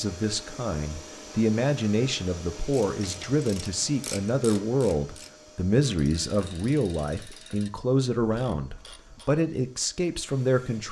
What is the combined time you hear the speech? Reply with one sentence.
The speech can be heard for 11 seconds in total.